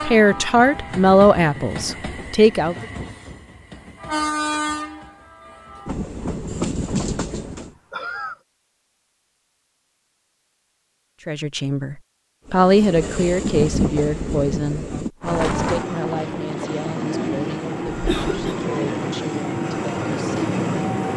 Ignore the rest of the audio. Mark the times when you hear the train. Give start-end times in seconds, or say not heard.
0.0-7.7, 12.4-21.1.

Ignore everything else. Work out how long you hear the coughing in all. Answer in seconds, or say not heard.
2 s.